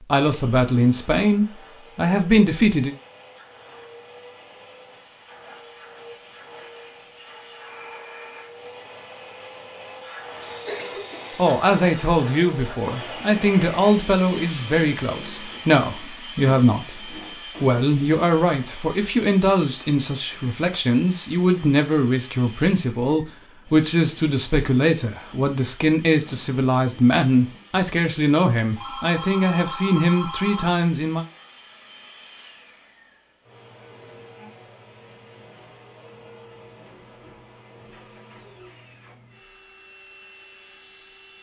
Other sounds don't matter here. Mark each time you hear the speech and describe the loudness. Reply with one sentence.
You can hear the speech briefly from 0.0 to 3.0 s; and from 11.3 to 31.2 s, at a steady volume.